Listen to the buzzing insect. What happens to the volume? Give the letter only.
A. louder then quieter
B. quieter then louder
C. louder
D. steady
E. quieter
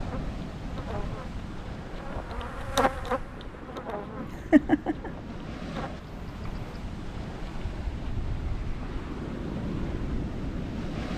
A.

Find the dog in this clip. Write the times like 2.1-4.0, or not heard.
not heard.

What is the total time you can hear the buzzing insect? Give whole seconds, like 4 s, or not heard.
7 s.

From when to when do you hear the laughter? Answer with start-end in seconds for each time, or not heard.
4.2-5.1.